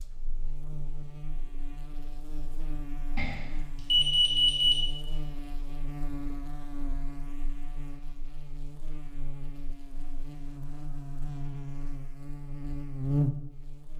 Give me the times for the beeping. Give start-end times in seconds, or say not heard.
3.1-4.8.